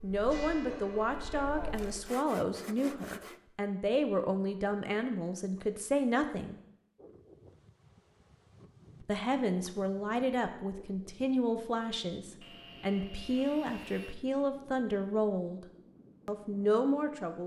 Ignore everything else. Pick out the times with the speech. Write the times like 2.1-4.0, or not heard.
0.0-6.5, 9.0-15.7, 16.2-17.4.